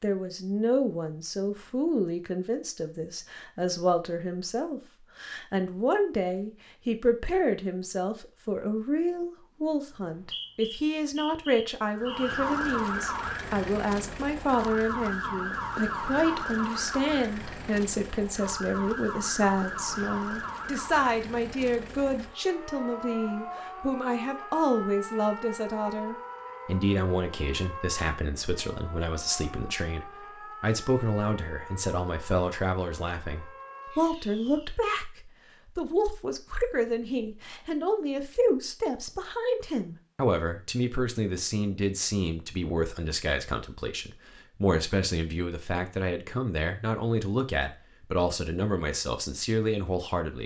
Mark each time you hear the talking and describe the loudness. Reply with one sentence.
You can hear the talking from 0.0 to 50.4 s, at a steady volume.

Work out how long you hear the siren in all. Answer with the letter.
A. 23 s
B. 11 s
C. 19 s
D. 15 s
A.